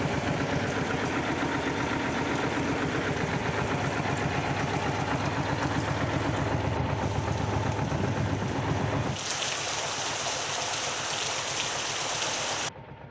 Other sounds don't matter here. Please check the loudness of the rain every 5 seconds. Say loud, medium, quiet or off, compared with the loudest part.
quiet, medium, loud.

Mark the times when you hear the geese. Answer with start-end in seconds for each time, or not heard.
not heard.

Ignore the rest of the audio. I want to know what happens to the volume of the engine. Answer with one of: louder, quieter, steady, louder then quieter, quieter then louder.
quieter.